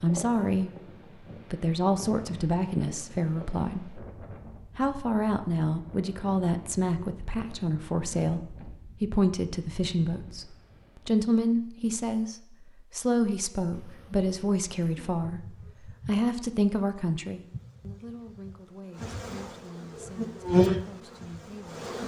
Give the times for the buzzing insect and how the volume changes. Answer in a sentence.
You can hear the buzzing insect from 13.7 to 22.0 s, getting louder.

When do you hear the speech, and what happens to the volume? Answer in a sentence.
You can hear the speech from 0.0 to 21.9 s, getting quieter.